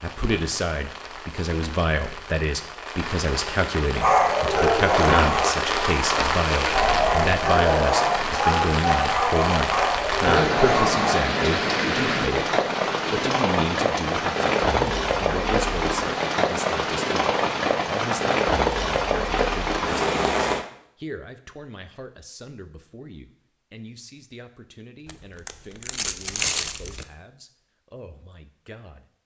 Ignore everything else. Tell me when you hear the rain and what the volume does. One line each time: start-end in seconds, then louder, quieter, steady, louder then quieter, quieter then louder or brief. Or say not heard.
0.0-20.6 louder.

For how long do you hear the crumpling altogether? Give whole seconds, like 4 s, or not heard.
2 s.